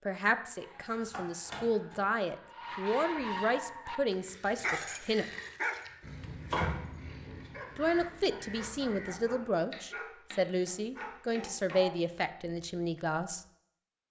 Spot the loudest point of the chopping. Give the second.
7 s.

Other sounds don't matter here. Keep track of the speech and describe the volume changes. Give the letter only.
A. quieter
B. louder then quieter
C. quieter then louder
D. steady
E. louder
D.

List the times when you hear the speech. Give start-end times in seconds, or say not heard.
0.1-5.2, 7.8-13.4.